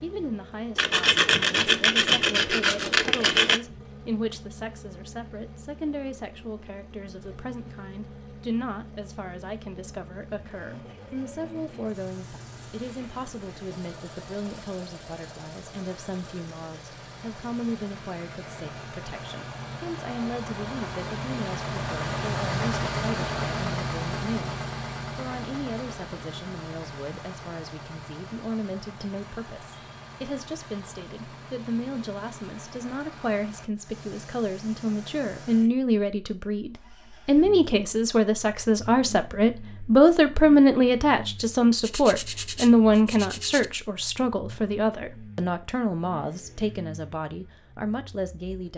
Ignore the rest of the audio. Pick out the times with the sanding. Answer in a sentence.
You can hear the sanding from 0.8 to 3.6 s and from 41.8 to 43.6 s.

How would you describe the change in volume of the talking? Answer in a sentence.
The loudness of the talking goes up.